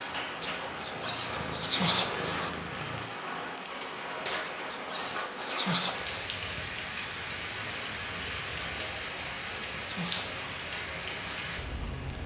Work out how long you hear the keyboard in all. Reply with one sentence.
You can't hear the keyboard here.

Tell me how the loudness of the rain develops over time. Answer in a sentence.
The volume of the rain stays about the same.